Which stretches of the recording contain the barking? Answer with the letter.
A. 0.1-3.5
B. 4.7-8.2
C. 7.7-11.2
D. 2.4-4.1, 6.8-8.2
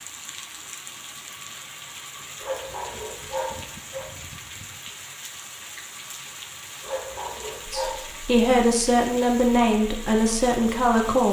D.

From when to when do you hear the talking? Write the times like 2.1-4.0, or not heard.
7.7-11.2.